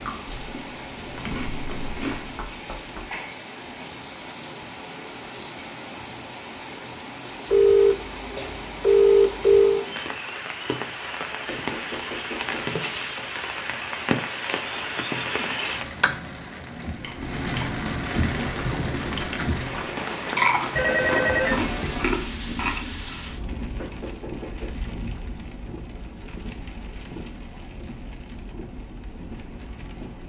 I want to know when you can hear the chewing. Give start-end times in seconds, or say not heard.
0.0-2.5, 16.8-23.3.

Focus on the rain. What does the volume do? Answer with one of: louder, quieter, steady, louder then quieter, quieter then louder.
louder then quieter.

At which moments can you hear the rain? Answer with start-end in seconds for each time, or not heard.
0.0-30.2.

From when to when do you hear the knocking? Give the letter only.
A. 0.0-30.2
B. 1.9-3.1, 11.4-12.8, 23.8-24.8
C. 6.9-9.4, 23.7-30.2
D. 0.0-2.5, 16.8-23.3
B.